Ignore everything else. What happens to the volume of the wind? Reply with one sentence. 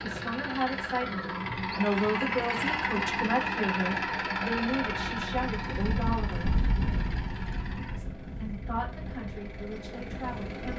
The volume of the wind goes down.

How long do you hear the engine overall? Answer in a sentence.
The engine can be heard for 11 seconds in total.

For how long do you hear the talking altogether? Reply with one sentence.
You can hear the talking for 9 seconds altogether.